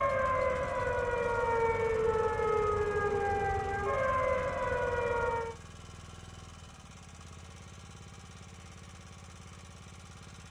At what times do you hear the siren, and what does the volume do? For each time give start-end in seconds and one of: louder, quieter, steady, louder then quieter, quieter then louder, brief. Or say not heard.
0.0-5.5 steady.